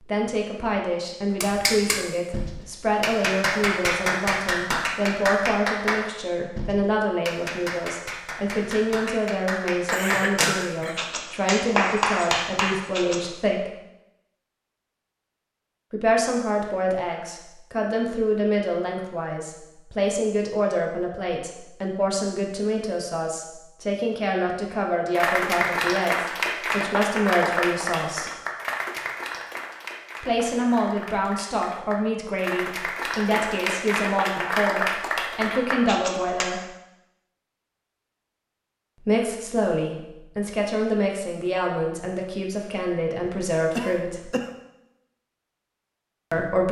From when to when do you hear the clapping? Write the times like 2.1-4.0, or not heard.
1.4-13.2, 24.7-36.5.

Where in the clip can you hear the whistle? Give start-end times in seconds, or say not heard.
not heard.